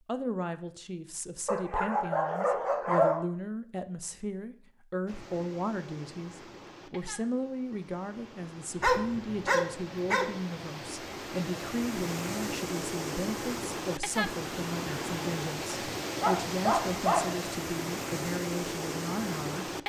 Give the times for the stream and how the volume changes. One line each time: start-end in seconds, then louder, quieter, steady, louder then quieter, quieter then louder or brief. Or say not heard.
5.0-19.8 louder.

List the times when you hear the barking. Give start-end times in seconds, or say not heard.
1.4-3.2, 8.8-10.3, 16.0-17.4.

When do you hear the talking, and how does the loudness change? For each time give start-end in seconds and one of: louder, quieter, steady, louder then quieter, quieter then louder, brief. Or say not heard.
0.1-19.7 steady.